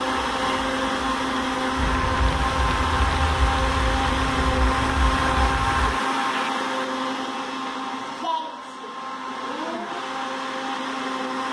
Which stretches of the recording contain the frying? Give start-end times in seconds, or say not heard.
0.1-6.5.